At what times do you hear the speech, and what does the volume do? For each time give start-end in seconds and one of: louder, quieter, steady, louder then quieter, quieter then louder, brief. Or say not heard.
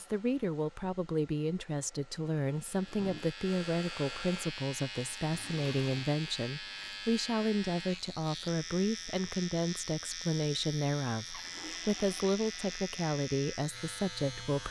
0.0-14.6 steady.